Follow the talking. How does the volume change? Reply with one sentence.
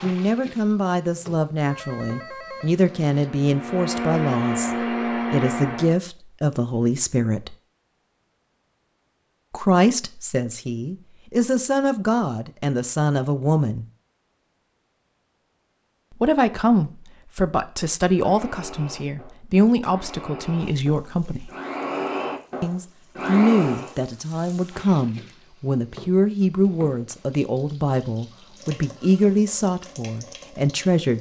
The volume of the talking stays about the same.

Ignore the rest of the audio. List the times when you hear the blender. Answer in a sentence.
The blender can be heard from 2.5 to 6.0 s and from 18.1 to 23.9 s.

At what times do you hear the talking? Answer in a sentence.
The talking can be heard from 0.0 to 7.5 s, from 9.5 to 13.8 s, from 16.1 to 21.5 s and from 22.6 to 31.1 s.